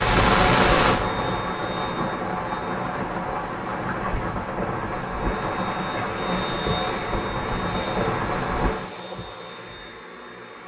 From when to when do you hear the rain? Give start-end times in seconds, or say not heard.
0.0-8.9.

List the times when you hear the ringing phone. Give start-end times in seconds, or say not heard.
not heard.